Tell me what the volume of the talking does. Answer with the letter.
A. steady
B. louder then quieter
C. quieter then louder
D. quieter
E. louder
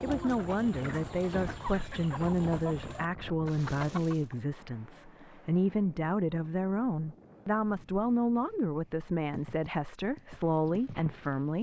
A.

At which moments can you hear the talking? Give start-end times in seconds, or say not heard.
0.0-11.5.